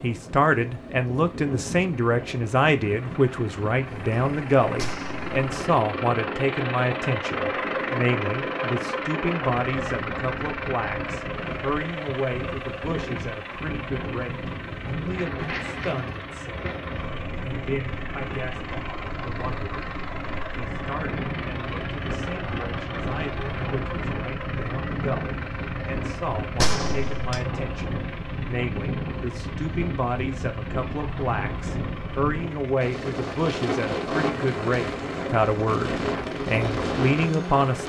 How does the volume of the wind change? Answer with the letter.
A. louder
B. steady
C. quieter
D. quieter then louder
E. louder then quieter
A.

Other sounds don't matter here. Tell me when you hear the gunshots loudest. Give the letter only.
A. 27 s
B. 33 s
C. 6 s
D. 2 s
A.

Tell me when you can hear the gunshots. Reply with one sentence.
The gunshots can be heard from 4.8 to 5.3 s and from 26.6 to 27.4 s.